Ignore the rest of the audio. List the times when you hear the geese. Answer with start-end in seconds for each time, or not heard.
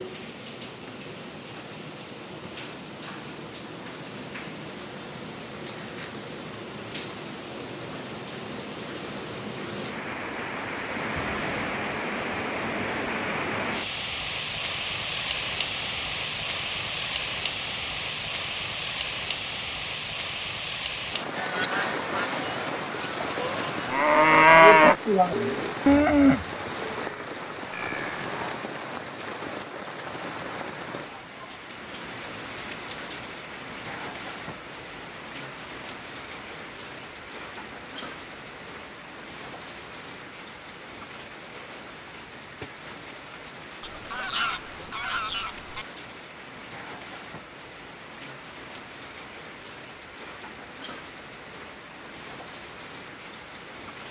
21.4-23.9, 43.8-45.9.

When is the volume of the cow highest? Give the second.
25 s.